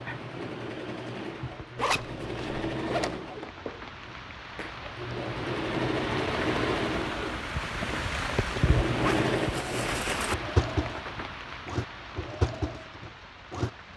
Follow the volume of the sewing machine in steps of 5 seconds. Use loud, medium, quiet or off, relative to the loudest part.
medium, loud, loud.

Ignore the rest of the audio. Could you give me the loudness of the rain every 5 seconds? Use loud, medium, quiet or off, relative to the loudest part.
medium, loud, medium.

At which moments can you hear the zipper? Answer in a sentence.
You can hear the zipper from 1.8 to 3.2 s and from 9.0 to 10.3 s.